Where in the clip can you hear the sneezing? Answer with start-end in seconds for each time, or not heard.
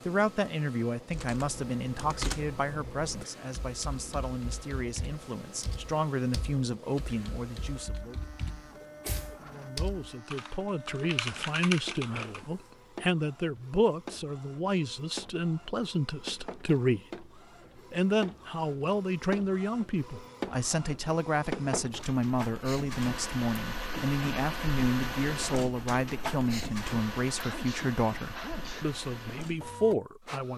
8.8-9.4, 27.2-28.9.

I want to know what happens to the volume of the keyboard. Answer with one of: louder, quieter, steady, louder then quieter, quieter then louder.
quieter then louder.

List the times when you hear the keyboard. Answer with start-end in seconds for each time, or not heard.
1.1-12.8.